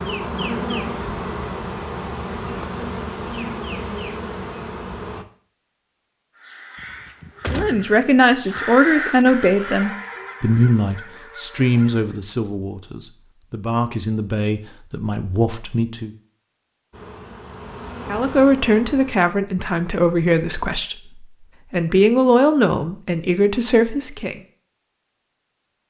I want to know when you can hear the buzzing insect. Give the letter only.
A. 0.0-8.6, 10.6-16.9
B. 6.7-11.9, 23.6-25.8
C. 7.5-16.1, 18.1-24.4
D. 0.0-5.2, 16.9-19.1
D.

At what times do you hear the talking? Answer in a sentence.
You can hear the talking from 7.5 to 16.1 s and from 18.1 to 24.4 s.